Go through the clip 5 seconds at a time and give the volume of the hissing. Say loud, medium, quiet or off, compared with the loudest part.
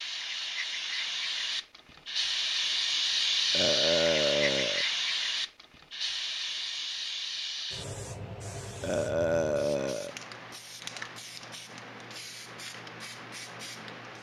loud, medium, quiet.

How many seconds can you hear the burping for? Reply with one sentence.
You can hear the burping for 3 seconds altogether.